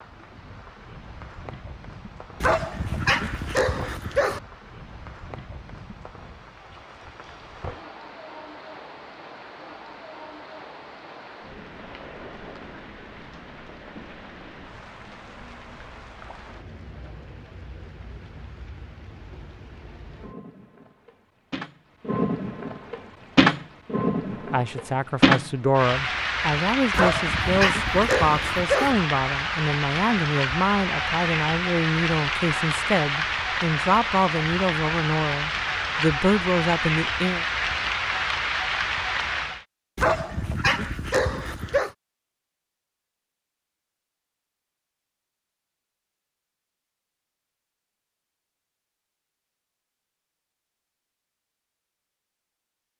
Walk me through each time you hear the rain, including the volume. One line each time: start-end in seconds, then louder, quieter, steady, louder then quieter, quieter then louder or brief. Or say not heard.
0.0-39.6 louder.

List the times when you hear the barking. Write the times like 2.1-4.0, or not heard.
2.4-4.4, 26.9-28.9, 40.0-41.9.